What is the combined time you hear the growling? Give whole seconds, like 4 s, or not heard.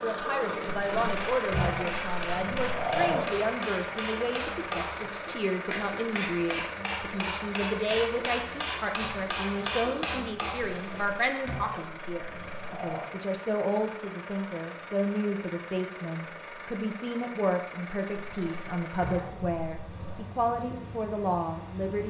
7 s.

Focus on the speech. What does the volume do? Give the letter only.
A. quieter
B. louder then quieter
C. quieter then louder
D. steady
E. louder
D.